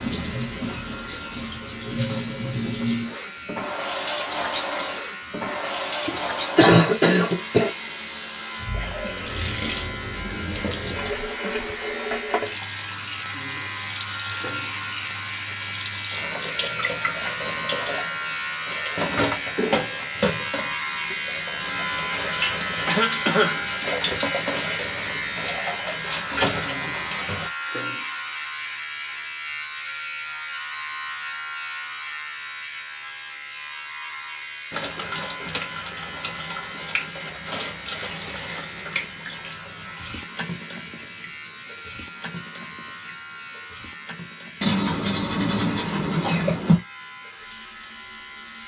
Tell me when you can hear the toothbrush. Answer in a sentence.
You can hear the toothbrush from 44.6 to 46.8 s.